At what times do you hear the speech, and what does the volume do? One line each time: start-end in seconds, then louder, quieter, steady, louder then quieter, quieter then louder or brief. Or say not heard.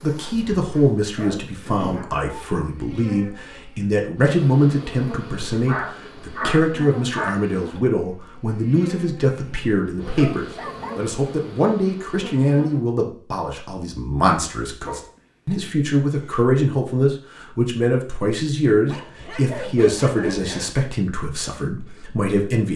0.0-22.7 steady.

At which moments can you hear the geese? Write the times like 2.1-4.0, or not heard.
not heard.